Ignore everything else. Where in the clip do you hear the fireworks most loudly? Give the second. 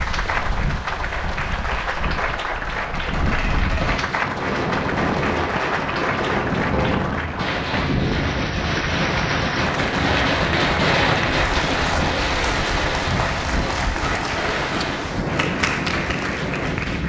11 s.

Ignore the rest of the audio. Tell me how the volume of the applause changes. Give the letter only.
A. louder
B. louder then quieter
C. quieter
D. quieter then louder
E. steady
E.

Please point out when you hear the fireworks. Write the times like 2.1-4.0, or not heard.
3.0-15.0.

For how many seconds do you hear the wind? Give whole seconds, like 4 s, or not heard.
17 s.